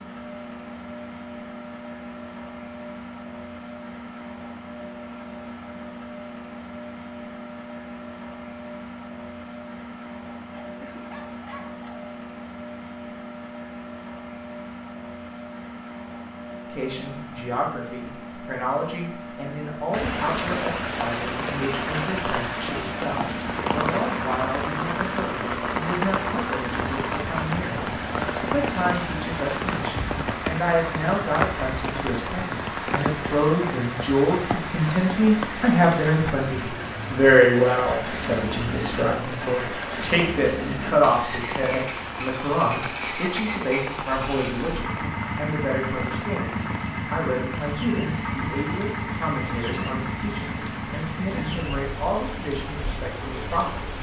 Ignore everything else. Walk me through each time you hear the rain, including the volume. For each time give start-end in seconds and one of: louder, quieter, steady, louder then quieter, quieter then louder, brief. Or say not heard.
19.9-53.9 quieter.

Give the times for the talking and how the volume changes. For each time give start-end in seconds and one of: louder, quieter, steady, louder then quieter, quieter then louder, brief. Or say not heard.
16.7-53.9 louder then quieter.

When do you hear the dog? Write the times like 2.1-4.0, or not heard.
10.5-12.1.